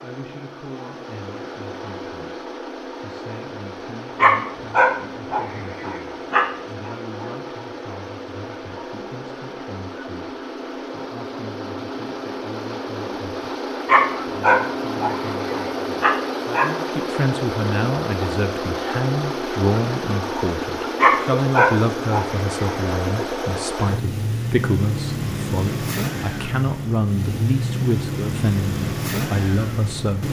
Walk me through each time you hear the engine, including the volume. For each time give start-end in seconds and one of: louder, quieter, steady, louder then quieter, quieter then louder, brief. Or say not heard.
0.0-30.2 louder.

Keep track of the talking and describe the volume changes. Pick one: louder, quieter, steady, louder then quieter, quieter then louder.
louder.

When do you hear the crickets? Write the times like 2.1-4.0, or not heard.
not heard.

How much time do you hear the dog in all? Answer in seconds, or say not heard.
7 s.